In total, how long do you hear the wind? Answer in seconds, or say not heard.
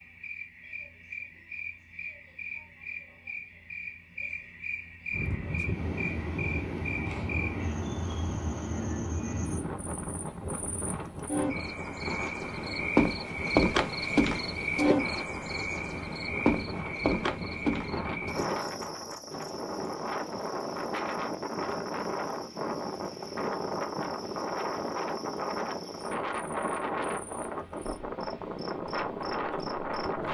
25 s.